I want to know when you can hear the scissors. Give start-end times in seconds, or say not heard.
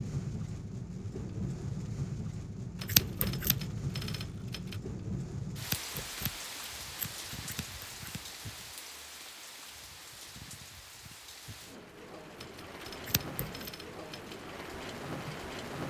2.9-3.5, 5.6-8.2, 13.1-13.7.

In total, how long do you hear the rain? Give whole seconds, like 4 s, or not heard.
16 s.